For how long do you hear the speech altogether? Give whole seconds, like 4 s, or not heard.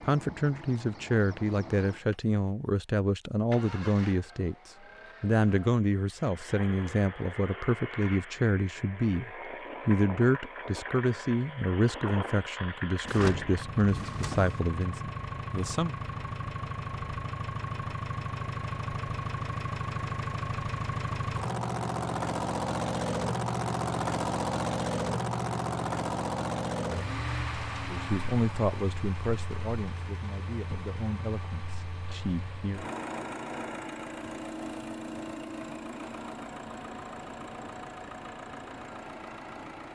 20 s.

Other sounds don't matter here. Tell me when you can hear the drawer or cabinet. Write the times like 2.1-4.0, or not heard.
13.1-14.6.